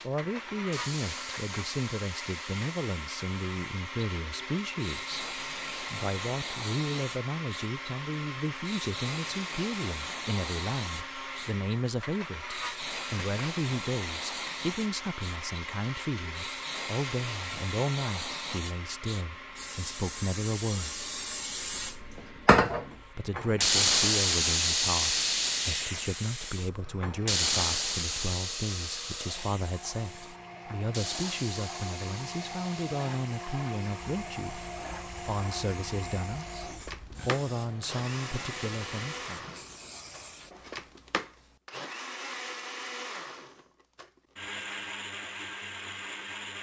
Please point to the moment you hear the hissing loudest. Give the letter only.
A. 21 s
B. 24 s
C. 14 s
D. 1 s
B.